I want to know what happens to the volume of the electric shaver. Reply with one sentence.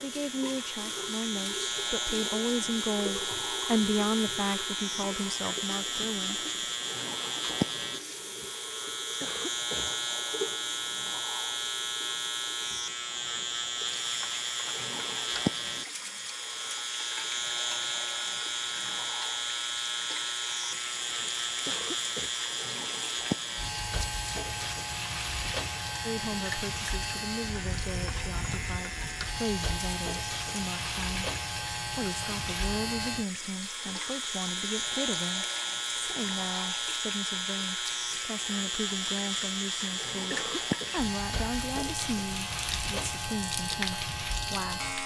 The volume of the electric shaver stays about the same.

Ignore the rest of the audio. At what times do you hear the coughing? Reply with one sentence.
You can hear the coughing from 9.2 to 10.0 s, from 21.6 to 22.3 s and from 40.3 to 41.0 s.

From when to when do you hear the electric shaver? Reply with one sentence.
You can hear the electric shaver from 0.0 to 45.0 s.